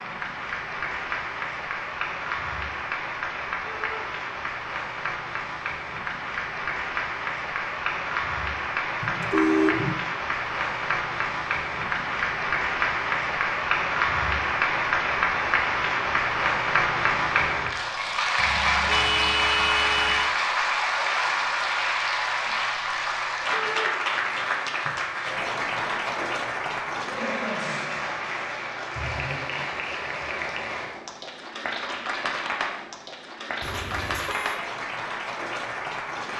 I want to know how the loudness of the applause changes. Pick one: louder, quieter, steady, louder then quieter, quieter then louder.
louder then quieter.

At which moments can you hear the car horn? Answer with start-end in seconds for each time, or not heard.
9.0-9.9, 18.4-20.3, 33.6-34.6.